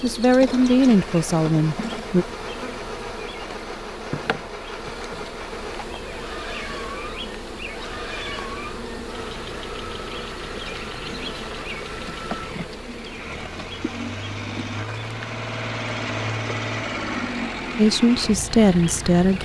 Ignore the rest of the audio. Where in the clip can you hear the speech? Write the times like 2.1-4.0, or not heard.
0.0-2.2, 17.8-19.4.